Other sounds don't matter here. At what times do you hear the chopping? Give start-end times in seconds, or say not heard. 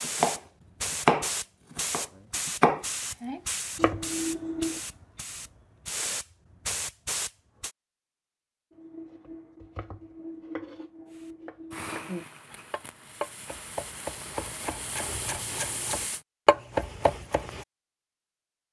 0.0-4.8, 8.8-17.6.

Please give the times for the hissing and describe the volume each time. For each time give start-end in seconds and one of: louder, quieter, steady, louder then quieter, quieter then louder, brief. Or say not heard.
0.0-7.7 quieter then louder
11.1-16.2 quieter then louder.